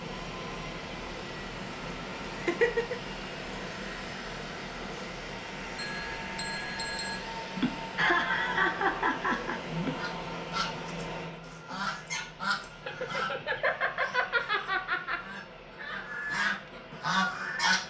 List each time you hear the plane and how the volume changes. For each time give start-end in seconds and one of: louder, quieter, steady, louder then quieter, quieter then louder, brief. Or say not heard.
0.0-17.8 quieter.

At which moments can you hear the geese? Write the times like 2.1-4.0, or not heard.
9.9-17.8.